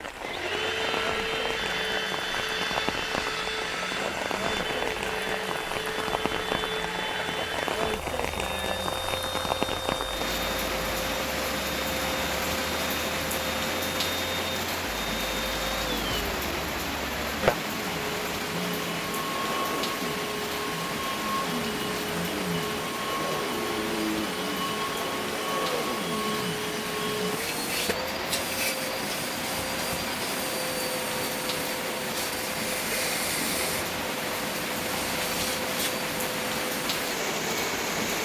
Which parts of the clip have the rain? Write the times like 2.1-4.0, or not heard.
0.0-38.2.